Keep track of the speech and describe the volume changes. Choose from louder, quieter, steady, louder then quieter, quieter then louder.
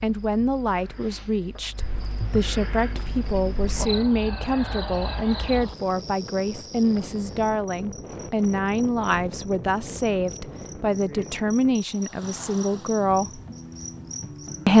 steady.